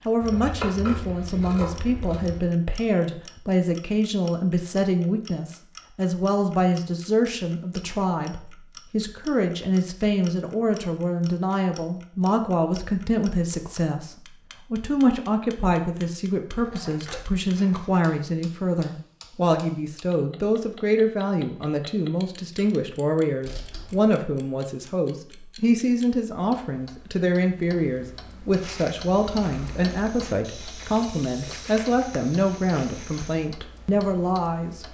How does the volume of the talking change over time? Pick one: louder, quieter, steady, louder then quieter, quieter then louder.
steady.